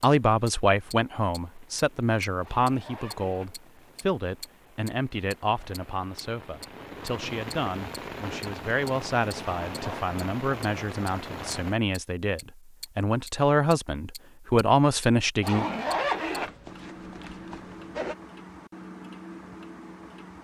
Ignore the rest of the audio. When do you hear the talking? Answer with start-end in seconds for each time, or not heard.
0.0-15.7.